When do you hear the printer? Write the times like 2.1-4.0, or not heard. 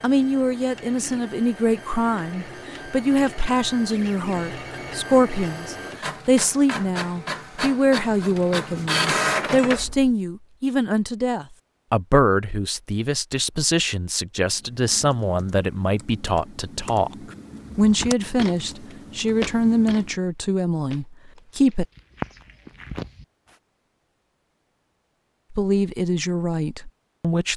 0.0-10.2.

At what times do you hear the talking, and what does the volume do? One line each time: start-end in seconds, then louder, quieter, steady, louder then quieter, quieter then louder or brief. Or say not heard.
0.0-21.9 steady
25.5-27.5 brief.